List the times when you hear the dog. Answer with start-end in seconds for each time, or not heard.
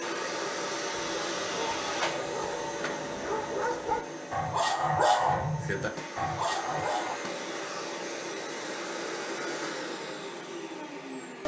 0.9-7.2.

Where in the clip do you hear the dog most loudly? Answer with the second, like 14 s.
5 s.